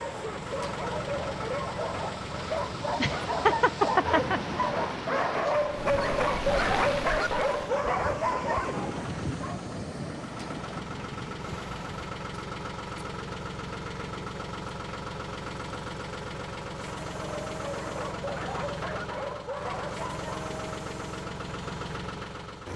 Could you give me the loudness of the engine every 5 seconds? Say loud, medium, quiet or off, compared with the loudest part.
loud, medium, loud, loud, loud.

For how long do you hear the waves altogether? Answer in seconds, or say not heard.
12 s.